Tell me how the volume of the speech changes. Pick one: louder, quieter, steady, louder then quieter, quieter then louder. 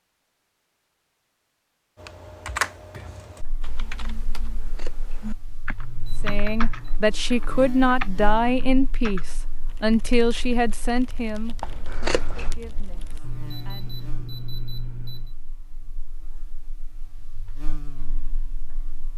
quieter.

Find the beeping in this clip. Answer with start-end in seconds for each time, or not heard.
5.8-7.0, 13.2-15.3.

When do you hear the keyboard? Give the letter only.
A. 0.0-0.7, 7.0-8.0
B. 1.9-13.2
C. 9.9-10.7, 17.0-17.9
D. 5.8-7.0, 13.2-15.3
B.